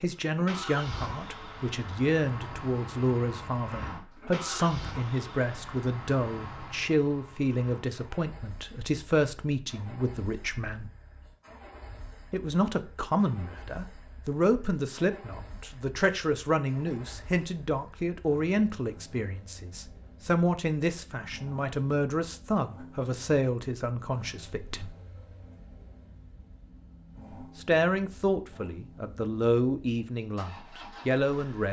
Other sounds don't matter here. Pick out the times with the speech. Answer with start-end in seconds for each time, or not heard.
0.0-10.9, 12.3-24.9, 27.6-31.6.